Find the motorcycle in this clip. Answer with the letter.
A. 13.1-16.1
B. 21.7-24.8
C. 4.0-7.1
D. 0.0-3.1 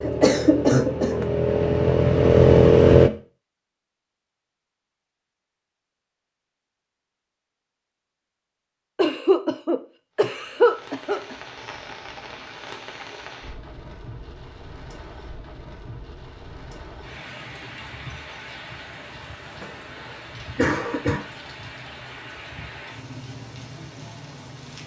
D.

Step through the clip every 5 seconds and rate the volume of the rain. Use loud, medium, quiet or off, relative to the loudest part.
off, off, loud, loud, loud.